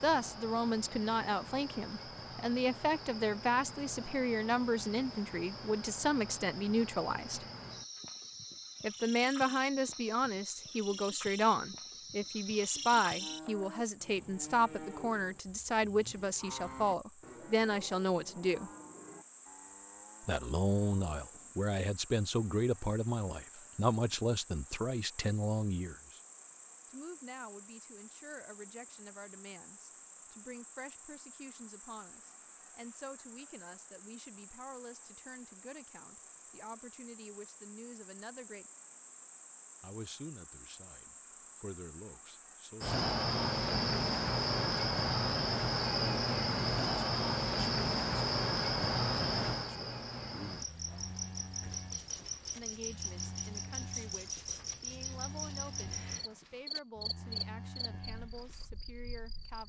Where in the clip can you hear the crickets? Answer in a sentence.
The crickets can be heard from 0.0 to 59.6 s.